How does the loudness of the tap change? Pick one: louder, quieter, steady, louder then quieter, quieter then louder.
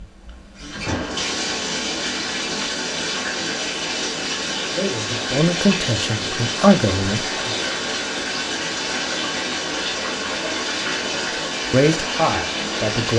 steady.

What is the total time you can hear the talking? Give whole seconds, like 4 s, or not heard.
4 s.